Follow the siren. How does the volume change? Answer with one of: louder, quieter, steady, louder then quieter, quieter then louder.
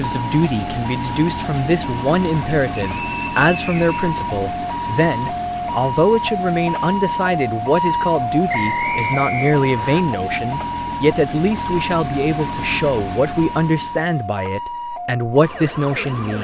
louder then quieter.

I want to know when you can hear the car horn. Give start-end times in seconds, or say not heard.
not heard.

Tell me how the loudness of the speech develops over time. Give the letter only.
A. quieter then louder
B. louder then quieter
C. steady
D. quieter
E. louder
C.